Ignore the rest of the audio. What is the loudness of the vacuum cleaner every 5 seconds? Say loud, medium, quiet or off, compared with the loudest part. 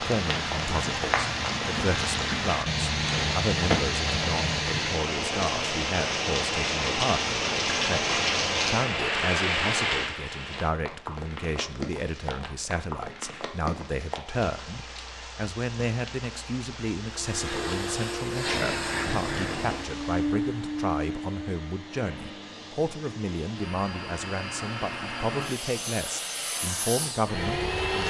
off, off, off, loud, loud, loud.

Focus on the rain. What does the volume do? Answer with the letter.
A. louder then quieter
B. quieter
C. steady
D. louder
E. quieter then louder
B.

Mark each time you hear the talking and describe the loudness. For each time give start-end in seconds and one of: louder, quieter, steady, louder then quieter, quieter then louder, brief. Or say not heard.
0.0-28.0 steady.